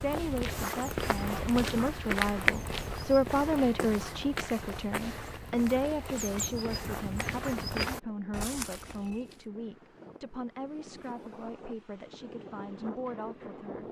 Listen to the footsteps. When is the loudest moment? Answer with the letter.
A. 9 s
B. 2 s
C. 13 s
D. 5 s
B.